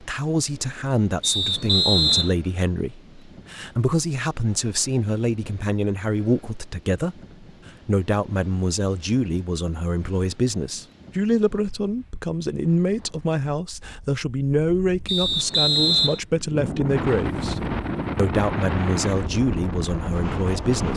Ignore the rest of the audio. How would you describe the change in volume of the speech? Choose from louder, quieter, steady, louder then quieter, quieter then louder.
steady.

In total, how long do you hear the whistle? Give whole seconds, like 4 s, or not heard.
2 s.